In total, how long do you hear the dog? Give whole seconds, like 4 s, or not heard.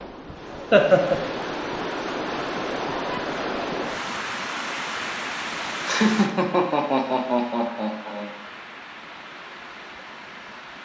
not heard.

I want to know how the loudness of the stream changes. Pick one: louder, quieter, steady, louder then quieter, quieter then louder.
quieter.